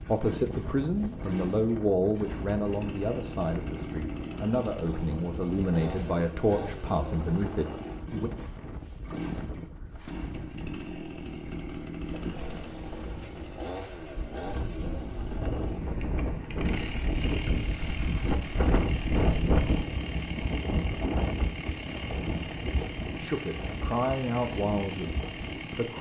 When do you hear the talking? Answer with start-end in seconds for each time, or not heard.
0.0-8.3, 23.2-25.9.